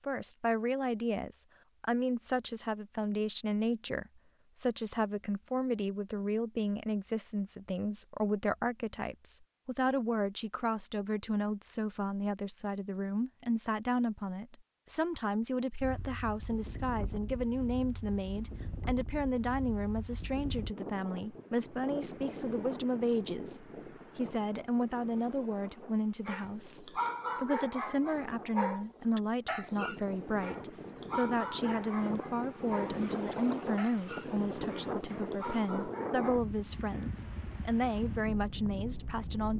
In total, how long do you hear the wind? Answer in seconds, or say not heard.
24 s.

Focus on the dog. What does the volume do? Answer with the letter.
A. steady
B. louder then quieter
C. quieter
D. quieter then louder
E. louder
C.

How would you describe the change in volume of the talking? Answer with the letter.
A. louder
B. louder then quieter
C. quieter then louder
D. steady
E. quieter
D.